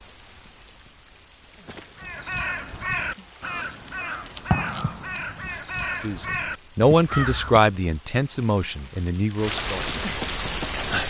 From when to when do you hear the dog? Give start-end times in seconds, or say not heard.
not heard.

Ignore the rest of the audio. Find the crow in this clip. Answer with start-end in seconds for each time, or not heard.
1.9-7.7.